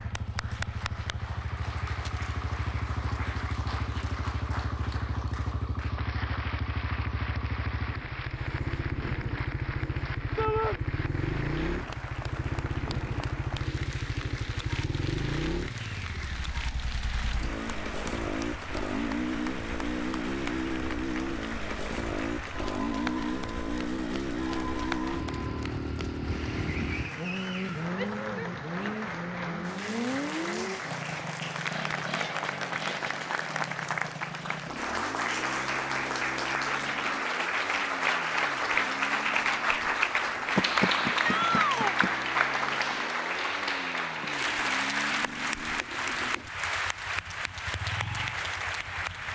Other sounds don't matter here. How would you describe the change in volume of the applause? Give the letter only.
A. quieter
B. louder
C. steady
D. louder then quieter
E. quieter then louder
B.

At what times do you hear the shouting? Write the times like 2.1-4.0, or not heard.
10.3-10.8, 27.9-29.1, 41.2-42.0.